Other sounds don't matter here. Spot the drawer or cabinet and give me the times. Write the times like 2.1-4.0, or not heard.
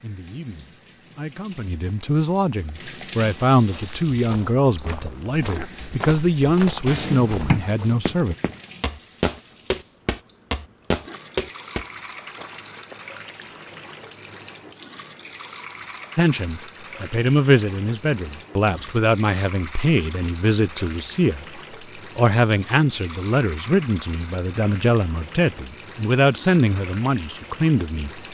6.8-8.0.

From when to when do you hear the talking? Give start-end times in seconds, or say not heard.
0.0-8.3, 16.1-28.2.